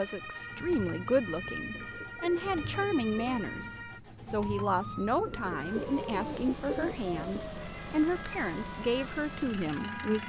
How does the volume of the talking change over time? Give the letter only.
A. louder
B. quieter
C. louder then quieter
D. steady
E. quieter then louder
D.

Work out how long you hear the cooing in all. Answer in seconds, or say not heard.
4 s.